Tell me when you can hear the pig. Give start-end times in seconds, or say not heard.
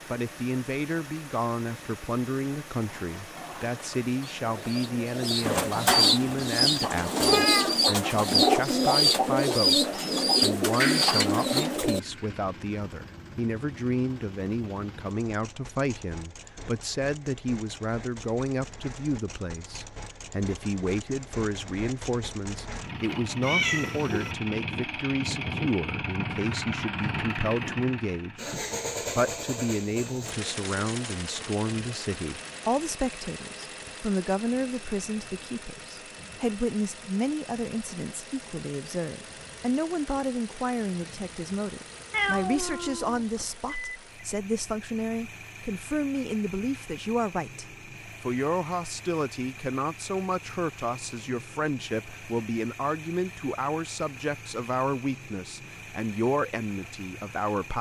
not heard.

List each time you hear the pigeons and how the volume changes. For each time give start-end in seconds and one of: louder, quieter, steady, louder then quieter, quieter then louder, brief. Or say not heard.
2.8-12.0 louder.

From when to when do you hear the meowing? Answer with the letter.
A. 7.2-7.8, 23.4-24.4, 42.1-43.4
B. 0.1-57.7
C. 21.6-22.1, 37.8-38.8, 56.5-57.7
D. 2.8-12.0
A.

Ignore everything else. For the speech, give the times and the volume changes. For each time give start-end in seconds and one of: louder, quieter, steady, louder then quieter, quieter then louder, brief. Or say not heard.
0.1-57.7 steady.